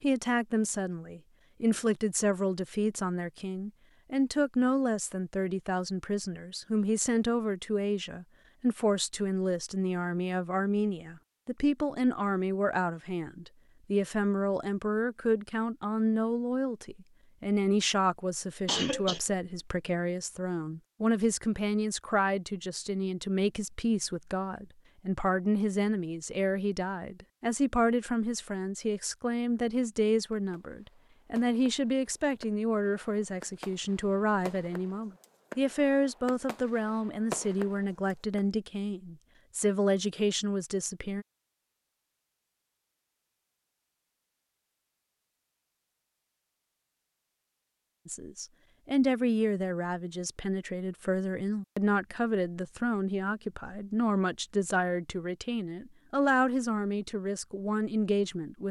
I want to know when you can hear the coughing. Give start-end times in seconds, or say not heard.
18.6-19.2.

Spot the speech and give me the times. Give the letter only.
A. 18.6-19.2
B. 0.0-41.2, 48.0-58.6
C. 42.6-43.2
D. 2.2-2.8
B.